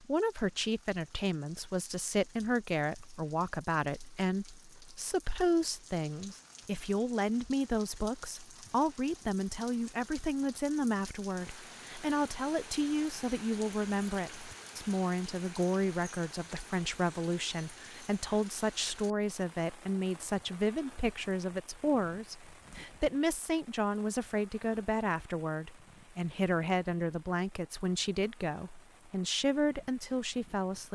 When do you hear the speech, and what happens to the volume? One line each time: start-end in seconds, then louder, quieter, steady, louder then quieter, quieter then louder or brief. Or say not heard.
0.0-30.8 steady.